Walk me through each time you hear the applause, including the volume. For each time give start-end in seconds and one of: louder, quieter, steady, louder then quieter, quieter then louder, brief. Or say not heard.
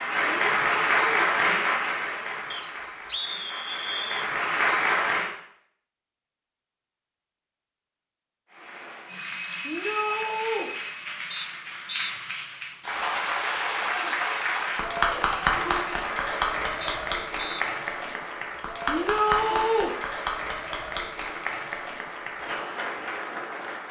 0.0-5.3 quieter then louder
8.5-23.8 louder then quieter.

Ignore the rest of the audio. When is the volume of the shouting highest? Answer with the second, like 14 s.
19 s.